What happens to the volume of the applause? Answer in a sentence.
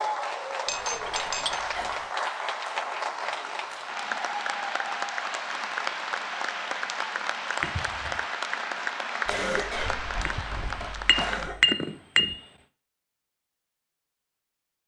The volume of the applause stays about the same.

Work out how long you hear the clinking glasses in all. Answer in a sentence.
You can hear the clinking glasses for 4 seconds altogether.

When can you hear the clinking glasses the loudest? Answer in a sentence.
The loudest moment of the clinking glasses is at 12 seconds.